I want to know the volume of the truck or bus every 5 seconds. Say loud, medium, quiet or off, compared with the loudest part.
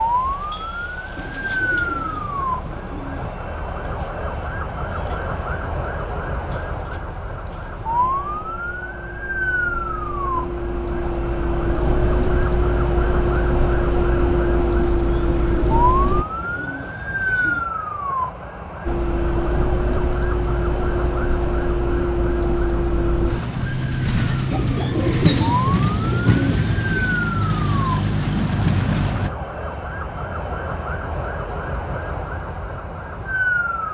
quiet, quiet, loud, loud, loud, loud, off.